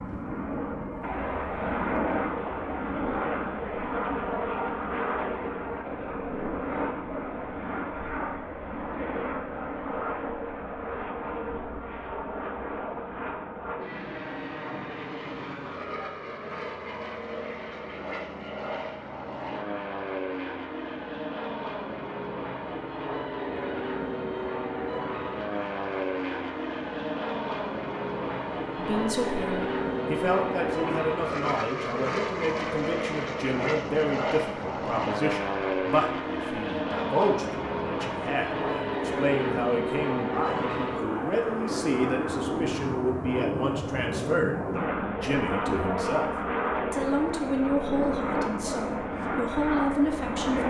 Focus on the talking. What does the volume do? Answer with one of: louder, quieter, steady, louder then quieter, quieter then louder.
steady.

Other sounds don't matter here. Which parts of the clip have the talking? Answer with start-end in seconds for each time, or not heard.
28.8-46.3, 46.9-50.6.